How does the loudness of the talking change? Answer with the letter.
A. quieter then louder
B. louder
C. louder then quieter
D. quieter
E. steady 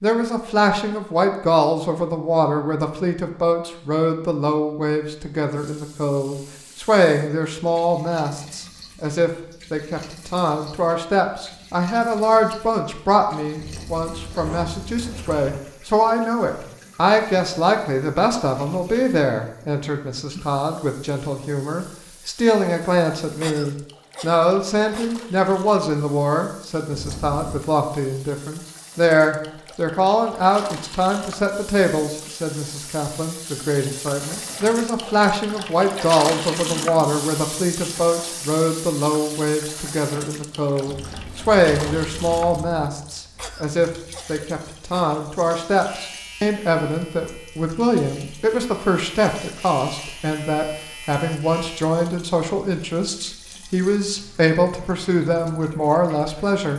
E.